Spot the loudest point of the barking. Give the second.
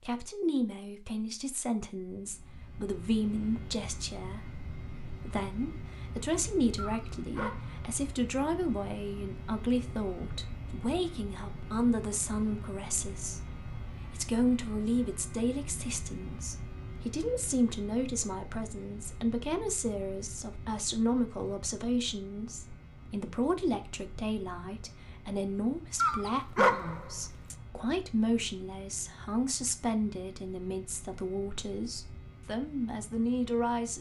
27 s.